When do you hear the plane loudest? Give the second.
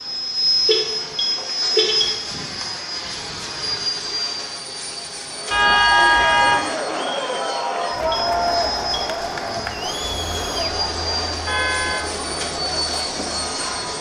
1 s.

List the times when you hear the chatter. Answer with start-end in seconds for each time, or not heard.
5.3-13.9.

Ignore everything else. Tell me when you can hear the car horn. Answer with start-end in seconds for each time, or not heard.
0.7-2.2, 5.5-6.6, 11.4-12.1.